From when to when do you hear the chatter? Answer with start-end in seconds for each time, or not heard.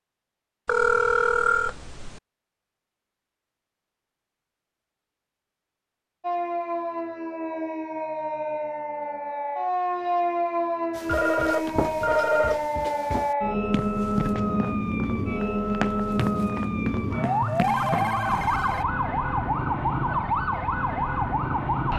not heard.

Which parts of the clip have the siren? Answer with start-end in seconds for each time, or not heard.
6.2-21.9.